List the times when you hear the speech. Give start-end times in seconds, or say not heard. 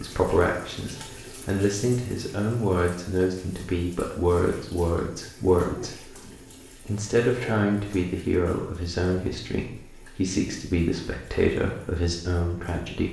0.0-13.0.